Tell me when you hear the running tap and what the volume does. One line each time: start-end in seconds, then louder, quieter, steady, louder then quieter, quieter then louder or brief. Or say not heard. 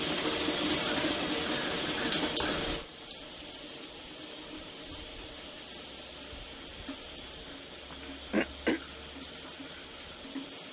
0.0-10.6 quieter.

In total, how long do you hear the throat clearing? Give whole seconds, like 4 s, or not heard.
3 s.